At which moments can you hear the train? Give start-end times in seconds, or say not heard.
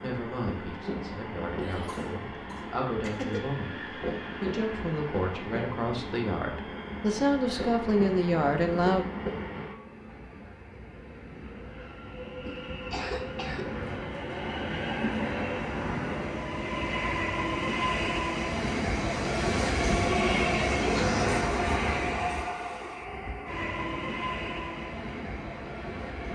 0.0-26.3.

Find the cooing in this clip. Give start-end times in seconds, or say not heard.
not heard.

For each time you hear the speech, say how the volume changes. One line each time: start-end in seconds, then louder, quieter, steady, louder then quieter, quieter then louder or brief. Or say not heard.
0.0-9.1 louder.